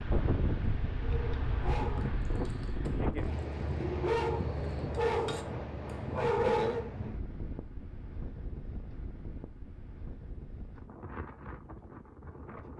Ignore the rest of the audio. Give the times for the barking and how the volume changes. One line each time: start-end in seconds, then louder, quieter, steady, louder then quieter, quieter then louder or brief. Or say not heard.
1.0-6.9 quieter then louder.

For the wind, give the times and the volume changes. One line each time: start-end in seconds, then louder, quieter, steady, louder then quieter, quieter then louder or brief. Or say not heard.
0.0-12.7 quieter.